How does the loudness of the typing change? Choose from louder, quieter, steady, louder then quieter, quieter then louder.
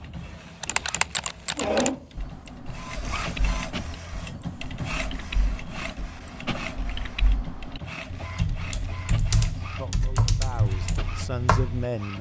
quieter then louder.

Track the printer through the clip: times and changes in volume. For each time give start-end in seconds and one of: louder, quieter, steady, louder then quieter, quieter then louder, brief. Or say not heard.
0.0-12.1 quieter.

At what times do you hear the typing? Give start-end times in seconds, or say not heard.
0.6-11.9.